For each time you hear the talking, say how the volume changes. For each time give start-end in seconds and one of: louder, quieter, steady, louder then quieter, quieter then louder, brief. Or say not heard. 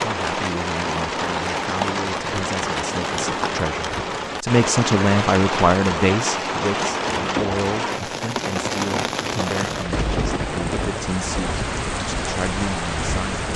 0.0-13.5 louder then quieter.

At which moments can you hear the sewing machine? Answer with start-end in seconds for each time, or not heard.
not heard.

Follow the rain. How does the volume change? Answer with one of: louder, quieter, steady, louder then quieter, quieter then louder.
steady.